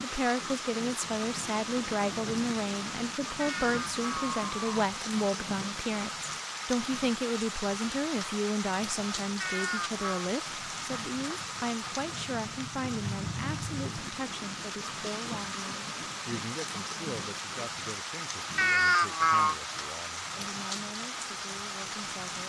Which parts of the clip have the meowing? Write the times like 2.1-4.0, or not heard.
3.4-4.7, 9.4-10.3, 18.6-19.6.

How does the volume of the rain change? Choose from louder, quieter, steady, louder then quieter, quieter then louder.
steady.